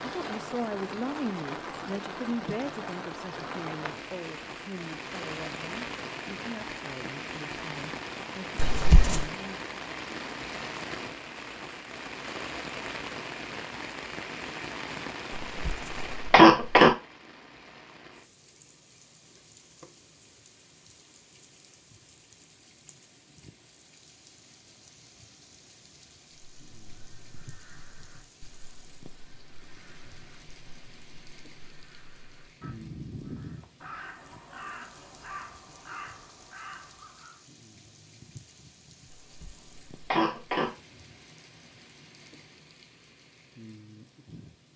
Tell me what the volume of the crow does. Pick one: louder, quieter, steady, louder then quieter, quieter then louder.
louder.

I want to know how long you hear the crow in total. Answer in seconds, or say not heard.
11 s.